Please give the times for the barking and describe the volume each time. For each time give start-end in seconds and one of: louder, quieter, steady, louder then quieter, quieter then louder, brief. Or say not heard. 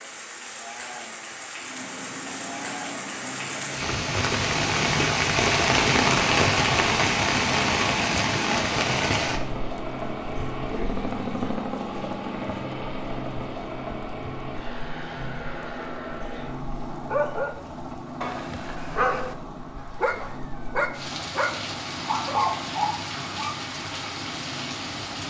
17.1-23.6 louder.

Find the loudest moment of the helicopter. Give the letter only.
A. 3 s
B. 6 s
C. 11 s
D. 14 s
C.